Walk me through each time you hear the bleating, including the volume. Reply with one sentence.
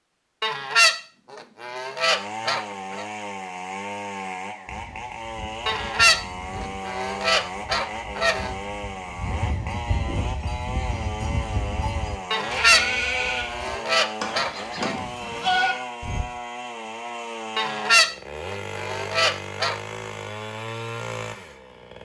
You can hear the bleating from 4.7 to 16.2 s, getting louder.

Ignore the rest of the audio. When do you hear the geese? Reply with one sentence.
The geese can be heard from 0.4 to 3.0 s, from 5.7 to 8.5 s, from 12.3 to 14.9 s and from 17.6 to 19.8 s.